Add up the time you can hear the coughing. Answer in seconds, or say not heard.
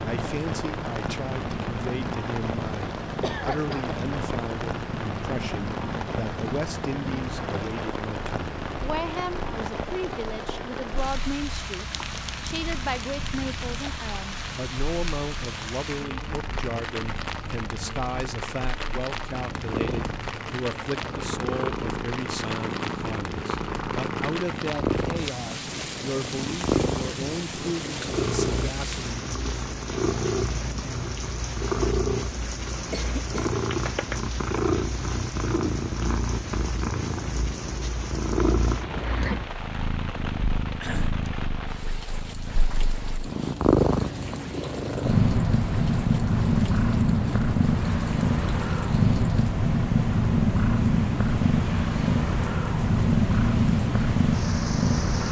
2 s.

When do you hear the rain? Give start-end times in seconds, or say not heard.
0.0-55.2.